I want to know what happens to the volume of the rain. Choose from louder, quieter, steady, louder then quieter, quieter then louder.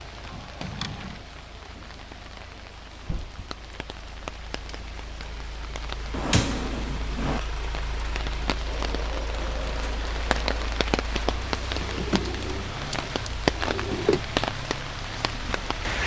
louder.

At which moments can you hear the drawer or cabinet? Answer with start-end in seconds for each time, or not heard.
0.6-1.2, 6.1-7.4, 11.8-14.2.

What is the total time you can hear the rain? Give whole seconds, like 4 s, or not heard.
16 s.